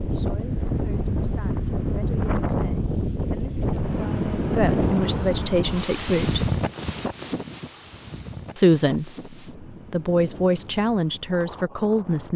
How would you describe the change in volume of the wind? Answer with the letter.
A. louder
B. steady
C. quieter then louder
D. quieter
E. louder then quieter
D.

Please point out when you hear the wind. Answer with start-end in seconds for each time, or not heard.
0.0-12.3.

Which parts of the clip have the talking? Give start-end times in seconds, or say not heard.
0.1-6.5, 8.6-12.3.